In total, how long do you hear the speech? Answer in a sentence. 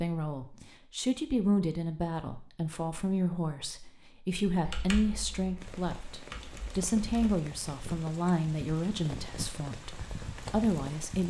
You can hear the speech for 11 seconds altogether.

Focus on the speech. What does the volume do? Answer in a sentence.
The loudness of the speech stays about the same.